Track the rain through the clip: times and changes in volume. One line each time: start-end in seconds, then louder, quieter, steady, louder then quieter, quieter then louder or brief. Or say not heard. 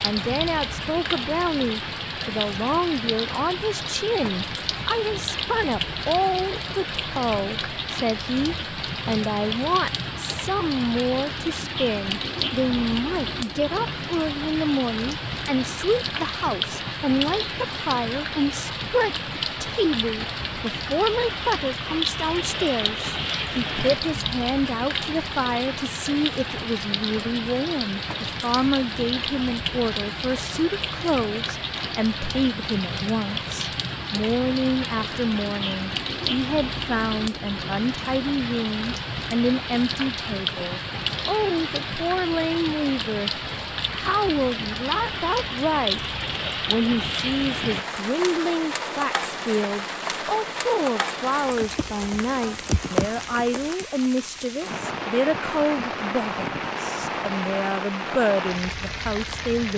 0.0-59.7 steady.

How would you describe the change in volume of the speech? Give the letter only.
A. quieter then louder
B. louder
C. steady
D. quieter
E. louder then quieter
C.